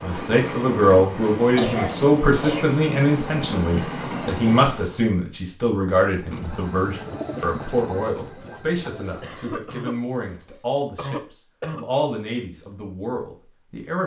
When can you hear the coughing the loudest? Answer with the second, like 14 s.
2 s.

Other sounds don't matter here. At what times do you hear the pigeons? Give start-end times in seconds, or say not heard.
6.2-9.6.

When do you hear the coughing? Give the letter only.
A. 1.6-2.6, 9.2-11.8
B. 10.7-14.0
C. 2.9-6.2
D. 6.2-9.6
A.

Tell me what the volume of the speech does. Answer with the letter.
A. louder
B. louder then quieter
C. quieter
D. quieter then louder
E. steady
C.